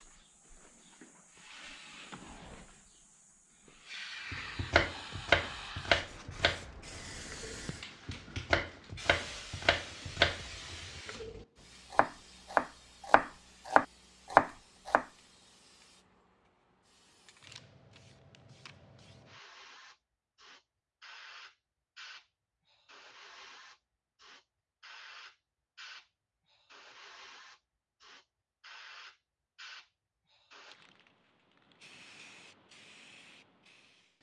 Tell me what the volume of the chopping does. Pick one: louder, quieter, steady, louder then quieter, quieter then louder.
quieter then louder.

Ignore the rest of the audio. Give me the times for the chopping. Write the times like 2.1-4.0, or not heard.
4.3-15.1.